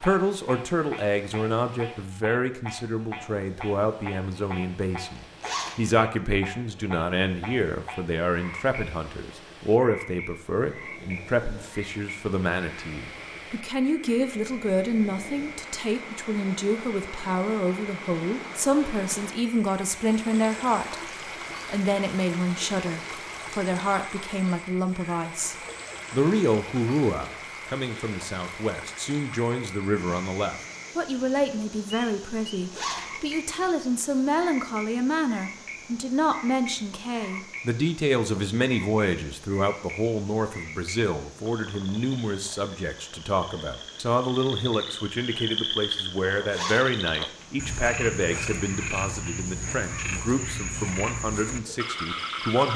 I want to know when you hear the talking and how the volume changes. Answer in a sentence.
You can hear the talking from 0.0 to 52.7 s, at a steady volume.